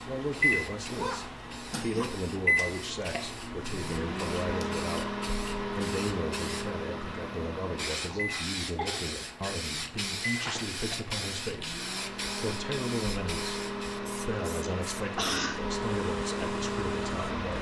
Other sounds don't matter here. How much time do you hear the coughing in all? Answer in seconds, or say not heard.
3 s.